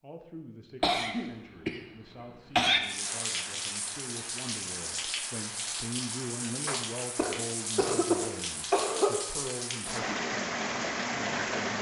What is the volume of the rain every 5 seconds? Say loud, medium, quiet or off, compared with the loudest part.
medium, medium, loud.